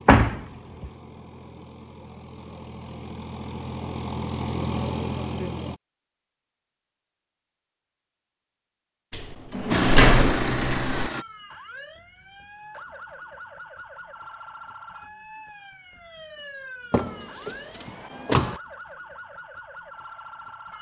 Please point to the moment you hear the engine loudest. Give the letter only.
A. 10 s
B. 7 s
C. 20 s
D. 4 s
A.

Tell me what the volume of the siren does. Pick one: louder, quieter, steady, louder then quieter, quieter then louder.
steady.